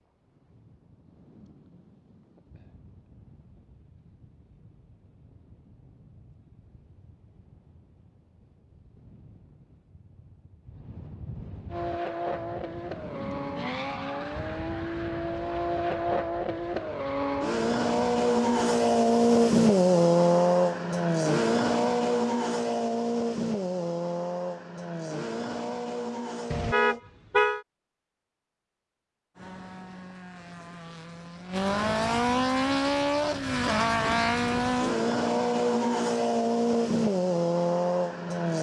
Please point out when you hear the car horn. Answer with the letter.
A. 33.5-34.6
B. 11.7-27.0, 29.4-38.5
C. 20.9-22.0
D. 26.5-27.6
D.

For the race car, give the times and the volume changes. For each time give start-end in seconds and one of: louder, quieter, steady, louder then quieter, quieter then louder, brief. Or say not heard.
11.7-27.0 louder then quieter
29.4-38.5 louder.